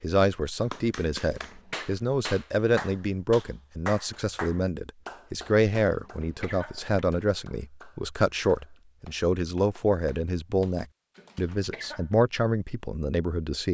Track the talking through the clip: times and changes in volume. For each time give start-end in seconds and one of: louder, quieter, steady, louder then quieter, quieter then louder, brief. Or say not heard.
0.0-13.7 steady.